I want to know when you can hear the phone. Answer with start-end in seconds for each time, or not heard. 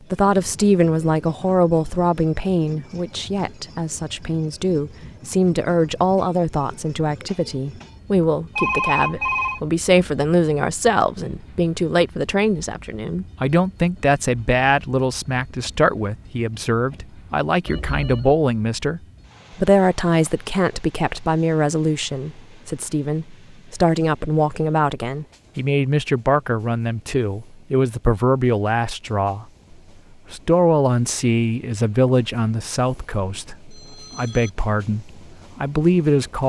8.6-9.6, 17.6-18.3, 33.7-34.5.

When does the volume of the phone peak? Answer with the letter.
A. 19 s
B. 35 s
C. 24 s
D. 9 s
D.